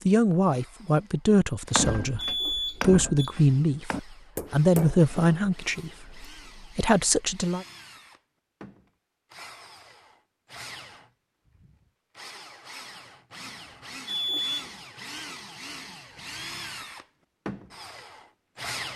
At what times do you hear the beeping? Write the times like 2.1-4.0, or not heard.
2.1-3.4, 14.1-14.8.